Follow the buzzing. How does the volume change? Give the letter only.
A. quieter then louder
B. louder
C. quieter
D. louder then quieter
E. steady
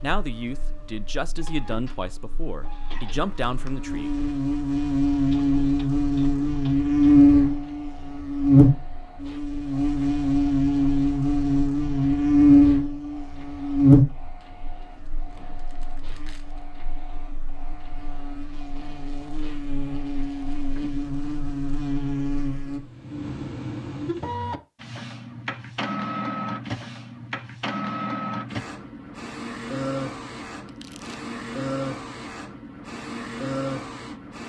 D.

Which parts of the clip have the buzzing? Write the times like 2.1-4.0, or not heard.
0.2-22.8.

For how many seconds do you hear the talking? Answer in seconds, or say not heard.
4 s.